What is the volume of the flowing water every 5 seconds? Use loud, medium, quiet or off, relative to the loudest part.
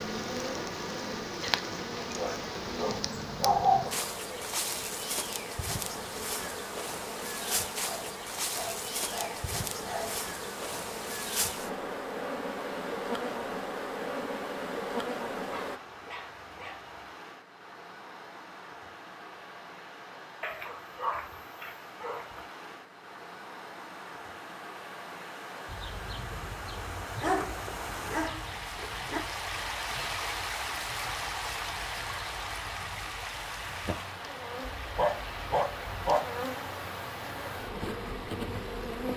medium, medium, medium, medium, medium, loud, loud, medium.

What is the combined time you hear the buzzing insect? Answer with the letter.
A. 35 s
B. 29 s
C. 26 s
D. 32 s
B.